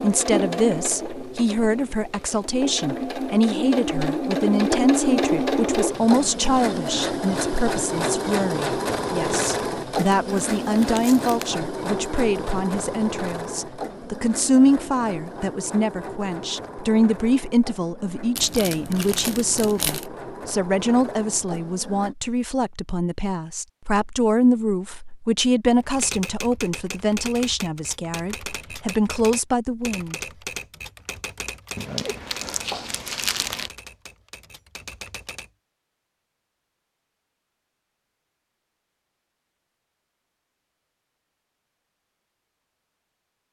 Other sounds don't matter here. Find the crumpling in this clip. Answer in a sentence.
You can hear the crumpling from 10.2 to 11.5 s, from 18.4 to 20.1 s and from 31.8 to 33.7 s.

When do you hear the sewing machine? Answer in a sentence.
The sewing machine can be heard from 0.0 to 22.1 s.